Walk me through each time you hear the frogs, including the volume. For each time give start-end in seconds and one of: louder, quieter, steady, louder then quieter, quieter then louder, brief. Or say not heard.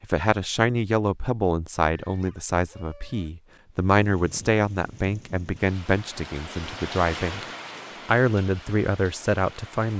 not heard.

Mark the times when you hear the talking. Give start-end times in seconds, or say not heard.
0.0-7.4, 8.1-9.9.